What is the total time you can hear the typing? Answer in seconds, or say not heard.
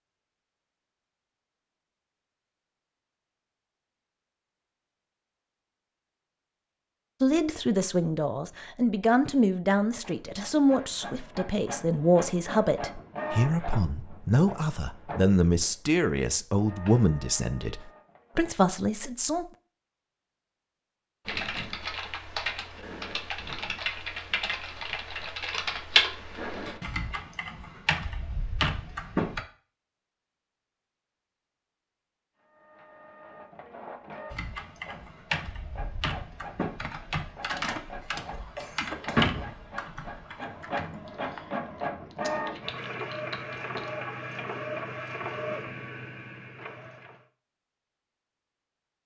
18 s.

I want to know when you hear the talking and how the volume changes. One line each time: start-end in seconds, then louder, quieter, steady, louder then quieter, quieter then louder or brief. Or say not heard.
7.2-19.4 steady.